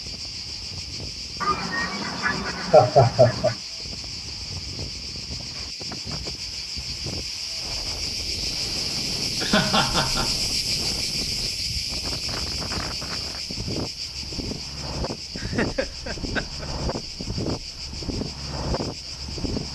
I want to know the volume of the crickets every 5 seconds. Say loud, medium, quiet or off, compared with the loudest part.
medium, loud, loud, medium.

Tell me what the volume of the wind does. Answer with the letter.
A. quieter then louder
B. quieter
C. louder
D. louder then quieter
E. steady
C.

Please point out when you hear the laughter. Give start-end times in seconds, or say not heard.
1.4-3.5, 9.4-10.3, 15.3-16.6.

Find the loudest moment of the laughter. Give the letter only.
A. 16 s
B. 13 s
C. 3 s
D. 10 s
C.